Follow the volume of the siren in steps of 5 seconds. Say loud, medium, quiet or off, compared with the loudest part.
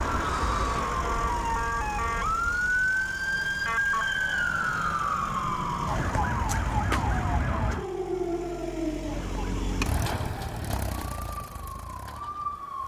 loud, loud, medium.